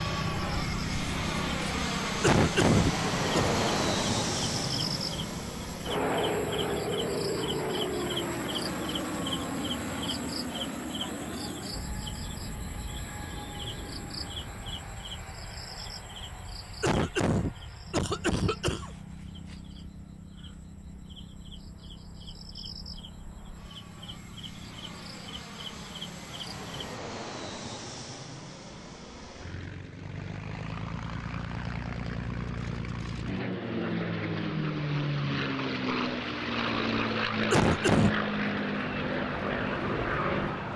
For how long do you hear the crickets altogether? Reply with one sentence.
The crickets can be heard for 27 seconds in total.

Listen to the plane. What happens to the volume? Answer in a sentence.
The loudness of the plane goes down, then up.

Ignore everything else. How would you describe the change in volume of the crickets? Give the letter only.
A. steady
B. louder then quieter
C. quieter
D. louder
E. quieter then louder
C.